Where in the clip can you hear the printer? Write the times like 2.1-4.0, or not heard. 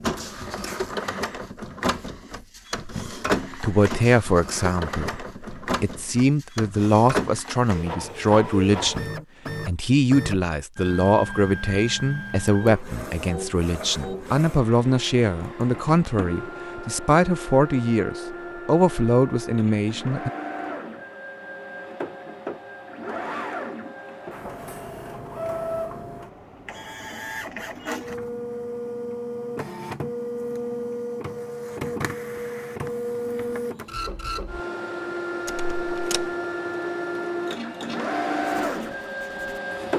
0.0-39.9.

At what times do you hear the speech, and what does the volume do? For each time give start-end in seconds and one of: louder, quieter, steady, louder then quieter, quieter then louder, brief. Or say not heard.
2.9-20.3 steady.